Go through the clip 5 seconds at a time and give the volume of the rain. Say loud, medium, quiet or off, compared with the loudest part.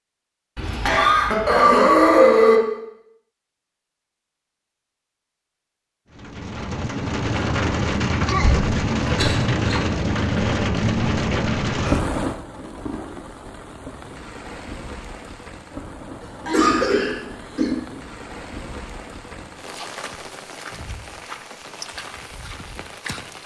off, loud, loud, quiet, quiet.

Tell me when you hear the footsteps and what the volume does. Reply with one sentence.
The footsteps can't be heard in this clip.